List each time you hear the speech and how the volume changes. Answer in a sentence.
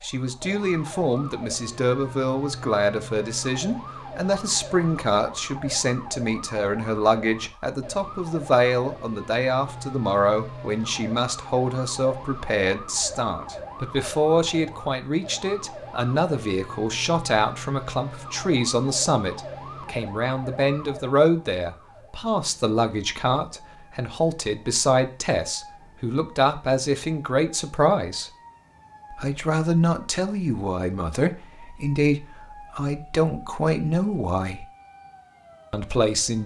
The speech can be heard from 0.0 to 28.3 s, at a steady volume; from 29.1 to 34.6 s, at a steady volume; and briefly from 35.7 to 36.4 s.